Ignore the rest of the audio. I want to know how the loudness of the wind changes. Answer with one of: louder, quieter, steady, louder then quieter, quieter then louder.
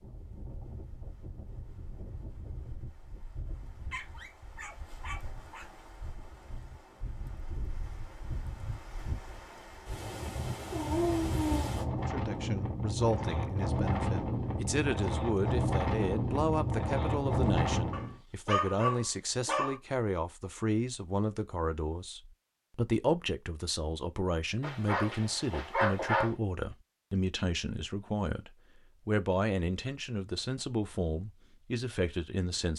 louder.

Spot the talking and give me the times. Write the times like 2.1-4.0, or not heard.
11.9-32.7.